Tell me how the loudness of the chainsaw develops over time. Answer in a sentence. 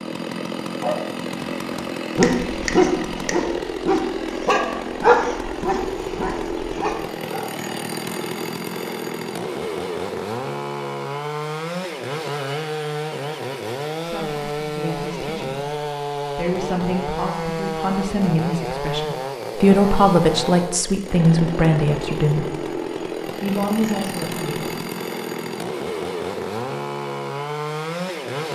The volume of the chainsaw stays about the same.